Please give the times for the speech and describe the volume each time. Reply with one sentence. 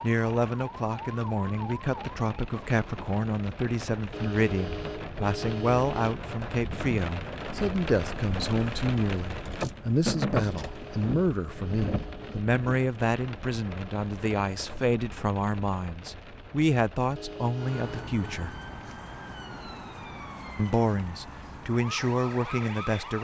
The speech can be heard from 0.0 to 18.6 s, at a steady volume; and briefly from 20.6 to 23.1 s.